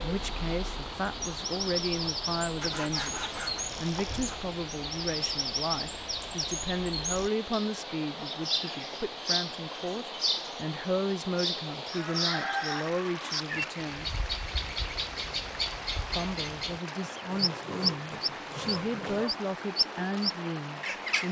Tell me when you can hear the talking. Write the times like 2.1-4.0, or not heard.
0.0-14.1, 16.1-21.2.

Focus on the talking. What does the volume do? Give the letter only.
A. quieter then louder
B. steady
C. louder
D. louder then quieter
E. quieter
B.